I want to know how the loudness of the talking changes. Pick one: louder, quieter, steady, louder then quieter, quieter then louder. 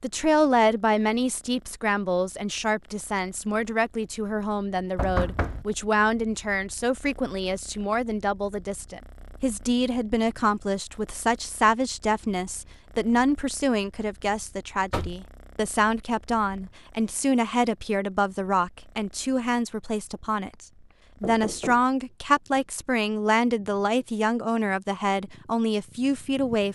steady.